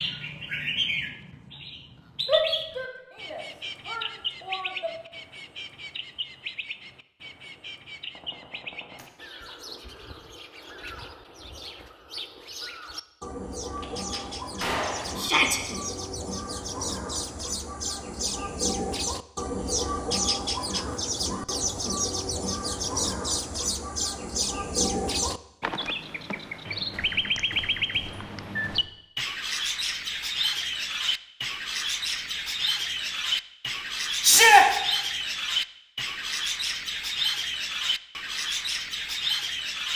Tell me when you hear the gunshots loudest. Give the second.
15 s.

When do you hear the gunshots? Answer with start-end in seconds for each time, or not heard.
8.2-9.1, 13.8-15.3, 26.9-28.9.